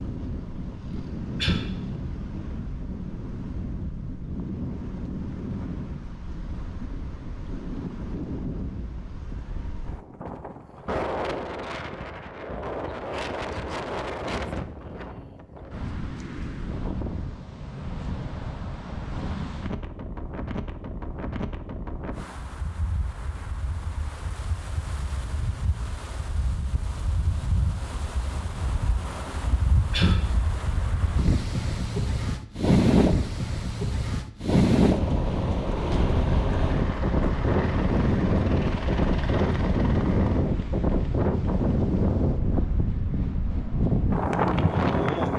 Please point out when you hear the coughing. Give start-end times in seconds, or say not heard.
0.9-1.6, 29.4-30.2.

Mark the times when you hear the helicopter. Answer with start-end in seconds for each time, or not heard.
34.9-40.5.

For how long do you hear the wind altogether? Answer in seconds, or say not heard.
45 s.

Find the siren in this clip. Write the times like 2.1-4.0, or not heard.
not heard.